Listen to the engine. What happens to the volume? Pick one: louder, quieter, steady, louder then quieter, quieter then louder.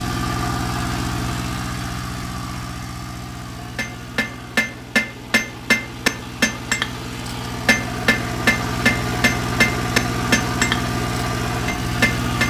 quieter then louder.